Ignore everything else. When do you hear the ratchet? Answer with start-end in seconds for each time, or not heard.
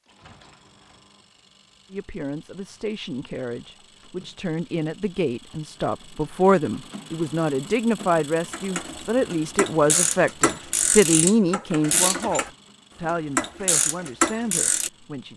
8.5-14.9.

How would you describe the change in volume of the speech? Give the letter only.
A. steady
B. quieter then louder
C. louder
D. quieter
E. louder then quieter
E.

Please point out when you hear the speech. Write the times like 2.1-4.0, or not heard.
1.9-15.3.